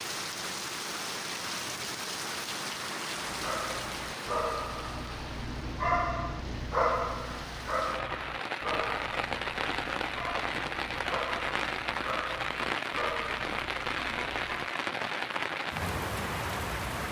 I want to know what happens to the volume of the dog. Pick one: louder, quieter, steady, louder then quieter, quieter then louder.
louder then quieter.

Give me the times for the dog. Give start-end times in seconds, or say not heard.
3.2-14.8.